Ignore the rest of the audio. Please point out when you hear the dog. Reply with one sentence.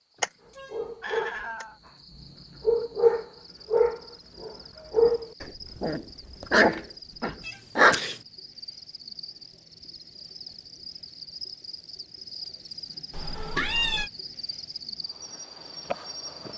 You can hear the dog from 0.7 to 1.9 s and from 2.6 to 8.0 s.